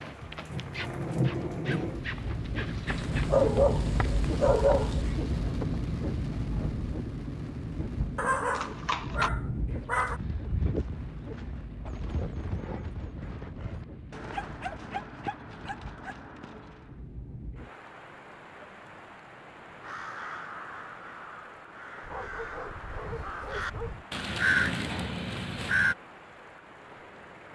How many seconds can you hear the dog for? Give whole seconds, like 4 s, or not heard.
8 s.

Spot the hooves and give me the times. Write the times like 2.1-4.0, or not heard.
0.0-3.5, 8.3-17.0.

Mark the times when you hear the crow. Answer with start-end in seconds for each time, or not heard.
19.8-25.9.